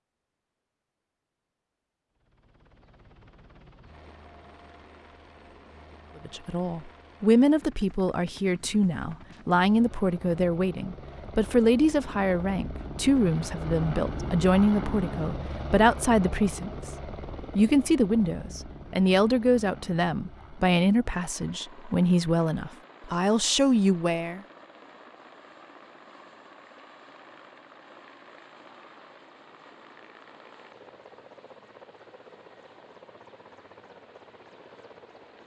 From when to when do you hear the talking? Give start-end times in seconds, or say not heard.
6.2-16.9, 17.6-24.4.